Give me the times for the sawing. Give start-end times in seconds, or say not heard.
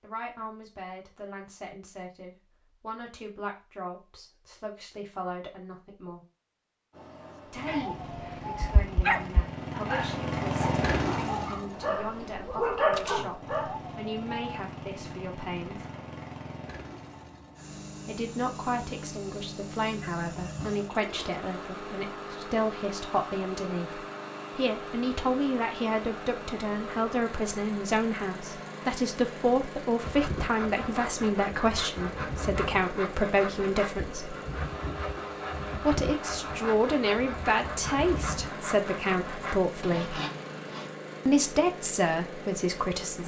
30.0-40.9.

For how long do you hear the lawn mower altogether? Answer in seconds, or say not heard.
36 s.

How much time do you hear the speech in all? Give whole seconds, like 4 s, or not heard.
37 s.